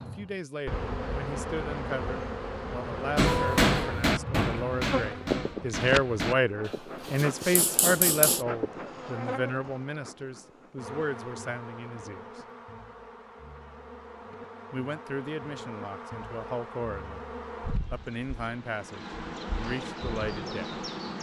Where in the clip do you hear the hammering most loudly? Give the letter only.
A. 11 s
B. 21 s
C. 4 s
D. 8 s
C.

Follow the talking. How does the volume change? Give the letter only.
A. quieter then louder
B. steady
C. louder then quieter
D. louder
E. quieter
C.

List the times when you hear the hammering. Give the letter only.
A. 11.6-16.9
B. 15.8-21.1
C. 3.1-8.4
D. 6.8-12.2
C.